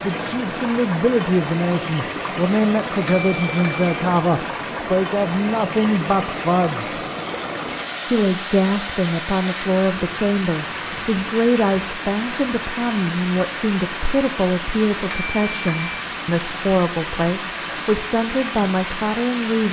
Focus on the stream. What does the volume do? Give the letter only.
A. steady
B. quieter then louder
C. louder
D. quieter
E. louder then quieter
A.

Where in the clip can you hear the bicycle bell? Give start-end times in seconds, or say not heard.
3.0-4.0, 15.1-16.0.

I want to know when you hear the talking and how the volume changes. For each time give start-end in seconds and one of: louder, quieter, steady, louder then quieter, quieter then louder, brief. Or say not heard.
0.0-6.9 steady
8.1-19.6 steady.